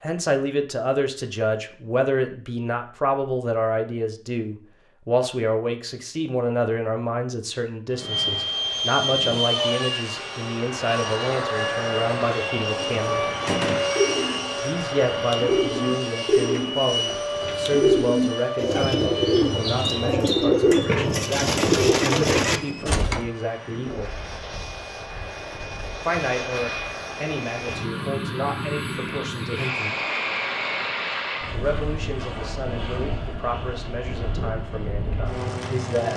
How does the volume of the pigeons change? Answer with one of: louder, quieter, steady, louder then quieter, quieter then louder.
louder.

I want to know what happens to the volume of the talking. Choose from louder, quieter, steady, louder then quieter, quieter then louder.
quieter.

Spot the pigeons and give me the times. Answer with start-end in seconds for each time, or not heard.
12.7-23.2.